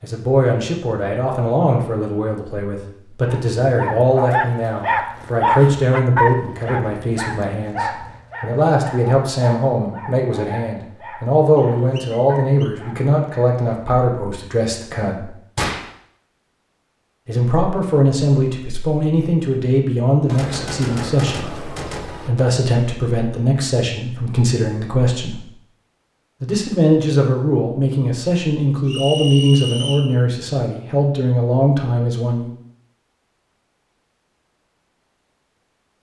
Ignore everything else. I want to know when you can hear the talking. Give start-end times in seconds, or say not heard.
0.0-15.2, 17.2-25.4, 26.4-32.5.